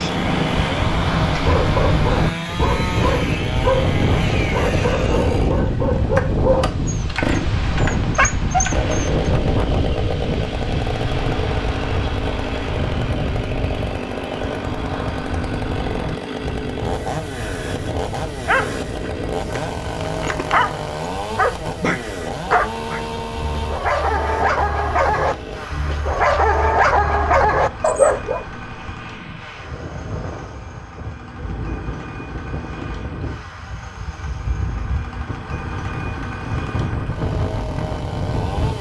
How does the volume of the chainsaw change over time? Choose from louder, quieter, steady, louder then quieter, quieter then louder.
quieter.